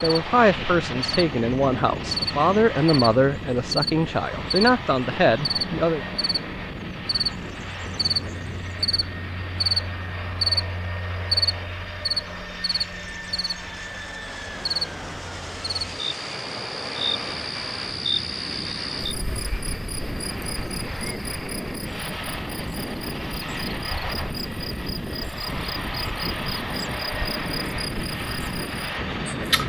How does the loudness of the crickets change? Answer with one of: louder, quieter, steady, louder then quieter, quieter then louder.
quieter.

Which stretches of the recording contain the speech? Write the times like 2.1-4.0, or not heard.
0.0-6.0.